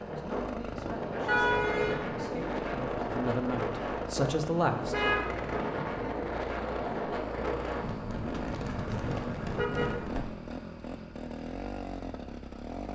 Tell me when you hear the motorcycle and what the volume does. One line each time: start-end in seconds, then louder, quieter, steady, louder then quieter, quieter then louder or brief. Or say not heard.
0.0-12.8 steady.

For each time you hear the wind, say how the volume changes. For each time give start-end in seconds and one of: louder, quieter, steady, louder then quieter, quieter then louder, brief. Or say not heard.
0.0-10.2 steady.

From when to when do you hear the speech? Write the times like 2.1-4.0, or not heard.
0.0-5.0.